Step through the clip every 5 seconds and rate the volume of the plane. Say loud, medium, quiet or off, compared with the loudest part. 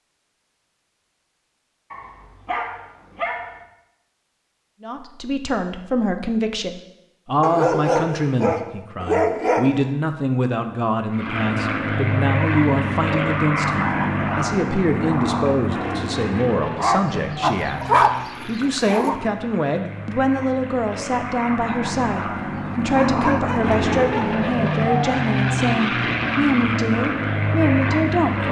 off, off, loud, medium, loud, loud.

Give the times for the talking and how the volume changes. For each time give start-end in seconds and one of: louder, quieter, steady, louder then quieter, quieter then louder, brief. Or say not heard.
4.8-28.4 steady.